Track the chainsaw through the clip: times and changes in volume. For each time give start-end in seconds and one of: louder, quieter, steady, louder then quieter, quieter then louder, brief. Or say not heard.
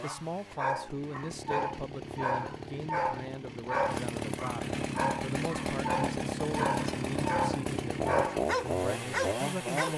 0.0-9.9 louder.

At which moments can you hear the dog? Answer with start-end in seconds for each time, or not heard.
0.0-9.9.